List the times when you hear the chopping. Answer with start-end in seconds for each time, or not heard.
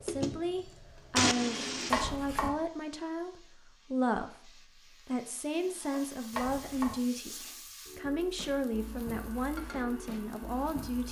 1.9-2.5, 6.3-7.0.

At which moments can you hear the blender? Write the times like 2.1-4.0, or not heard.
0.0-2.1, 8.7-11.0.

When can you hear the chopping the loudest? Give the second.
2 s.